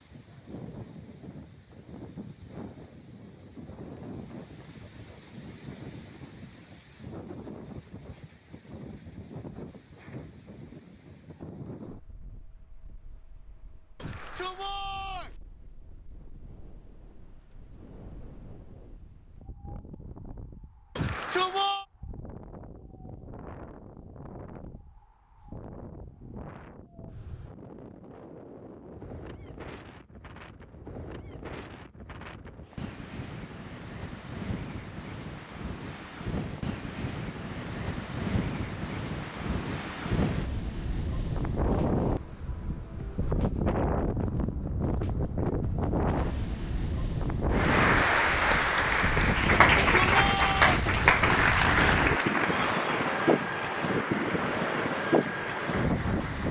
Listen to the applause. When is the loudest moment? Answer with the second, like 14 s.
50 s.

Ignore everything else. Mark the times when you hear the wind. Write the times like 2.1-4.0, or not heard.
0.0-56.4.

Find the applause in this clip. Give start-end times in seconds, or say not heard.
47.5-56.4.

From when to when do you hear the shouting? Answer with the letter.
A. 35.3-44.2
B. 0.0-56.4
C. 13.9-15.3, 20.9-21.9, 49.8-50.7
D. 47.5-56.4
C.